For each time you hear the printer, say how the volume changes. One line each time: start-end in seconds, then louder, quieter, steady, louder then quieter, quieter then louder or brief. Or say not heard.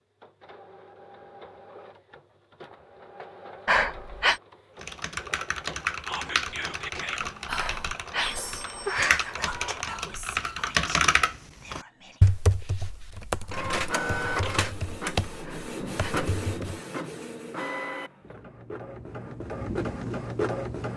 0.0-10.7 louder
13.5-20.9 quieter then louder.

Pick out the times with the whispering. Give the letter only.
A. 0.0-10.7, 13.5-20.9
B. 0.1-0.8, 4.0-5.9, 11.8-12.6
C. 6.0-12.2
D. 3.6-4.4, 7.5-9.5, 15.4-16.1
C.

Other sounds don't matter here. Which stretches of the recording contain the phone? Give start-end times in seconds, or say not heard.
3.6-4.4, 7.5-9.5, 15.4-16.1.